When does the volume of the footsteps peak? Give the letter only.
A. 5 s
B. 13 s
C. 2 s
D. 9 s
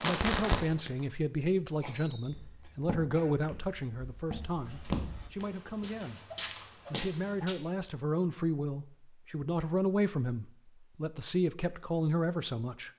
A.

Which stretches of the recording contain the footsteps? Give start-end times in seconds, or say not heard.
2.2-7.5.